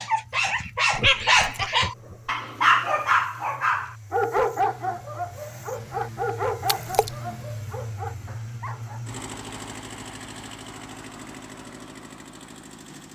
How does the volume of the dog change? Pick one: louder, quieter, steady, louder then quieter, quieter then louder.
quieter.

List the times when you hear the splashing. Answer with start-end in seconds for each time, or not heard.
6.7-7.2.